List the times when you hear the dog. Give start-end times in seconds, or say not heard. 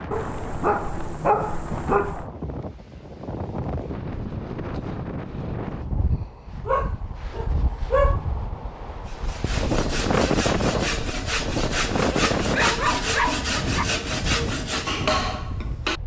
0.1-2.2, 6.7-8.2, 12.4-13.8.